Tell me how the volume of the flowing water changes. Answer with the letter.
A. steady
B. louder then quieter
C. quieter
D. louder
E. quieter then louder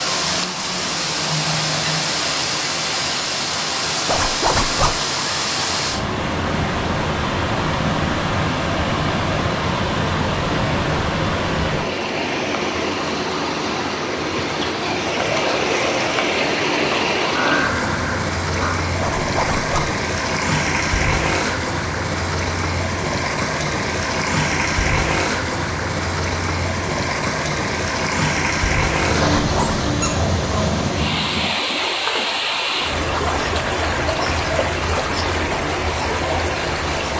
A.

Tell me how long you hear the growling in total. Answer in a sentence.
The growling can be heard for 6 seconds in total.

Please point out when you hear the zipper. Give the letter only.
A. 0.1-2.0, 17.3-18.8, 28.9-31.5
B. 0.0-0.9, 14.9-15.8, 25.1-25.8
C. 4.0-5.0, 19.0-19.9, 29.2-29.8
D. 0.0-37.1
C.